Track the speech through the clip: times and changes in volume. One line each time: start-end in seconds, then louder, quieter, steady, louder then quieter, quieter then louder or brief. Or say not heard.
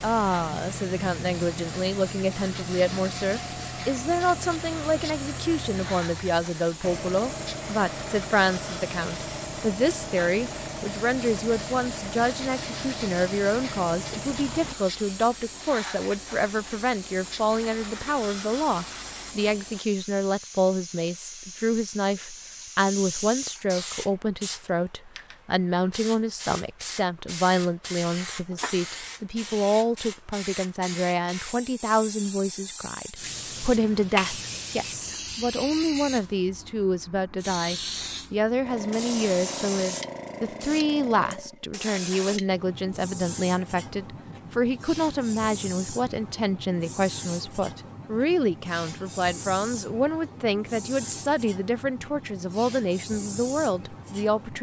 0.0-54.5 steady.